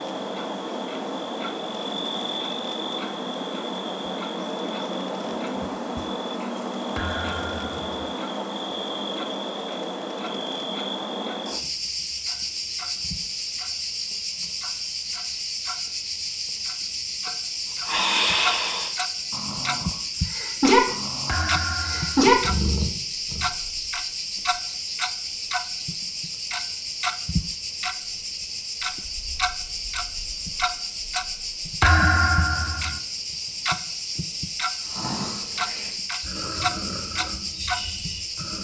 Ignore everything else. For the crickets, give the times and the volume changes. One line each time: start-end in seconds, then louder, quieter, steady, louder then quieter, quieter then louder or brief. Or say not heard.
0.0-38.5 steady.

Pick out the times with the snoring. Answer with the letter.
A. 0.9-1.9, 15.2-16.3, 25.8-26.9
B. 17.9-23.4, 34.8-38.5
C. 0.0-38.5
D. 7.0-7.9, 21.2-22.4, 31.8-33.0
B.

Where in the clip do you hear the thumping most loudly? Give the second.
32 s.